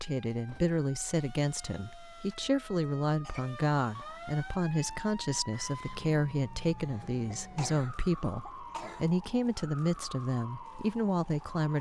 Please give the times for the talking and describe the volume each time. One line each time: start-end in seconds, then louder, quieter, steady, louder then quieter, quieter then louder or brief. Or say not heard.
0.0-11.7 steady.